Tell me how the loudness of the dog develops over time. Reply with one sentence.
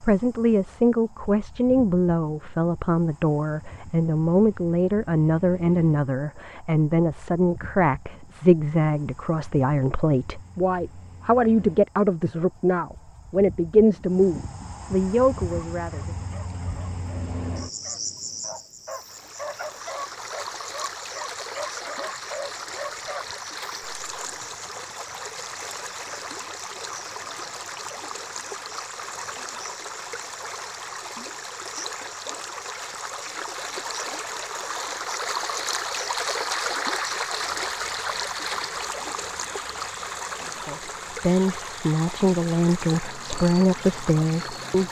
The volume of the dog goes up.